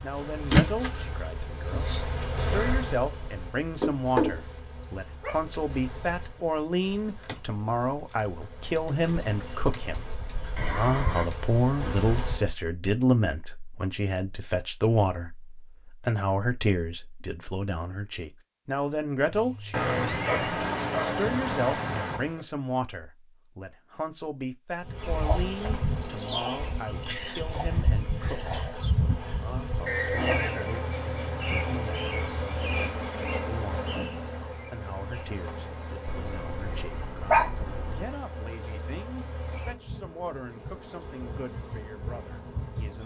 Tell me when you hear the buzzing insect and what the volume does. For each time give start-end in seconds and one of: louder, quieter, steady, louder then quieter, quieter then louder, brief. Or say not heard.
0.0-12.6 quieter then louder
24.9-43.0 quieter.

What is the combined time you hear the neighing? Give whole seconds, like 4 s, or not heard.
3 s.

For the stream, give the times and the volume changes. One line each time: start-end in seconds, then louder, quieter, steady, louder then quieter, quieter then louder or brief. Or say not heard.
not heard.